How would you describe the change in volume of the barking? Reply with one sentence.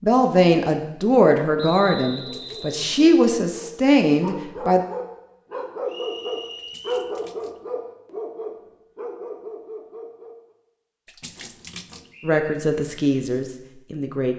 The loudness of the barking goes up, then down.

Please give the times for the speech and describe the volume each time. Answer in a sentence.
The speech can be heard from 0.0 to 4.8 s, getting quieter then louder; and briefly from 12.2 to 14.3 s.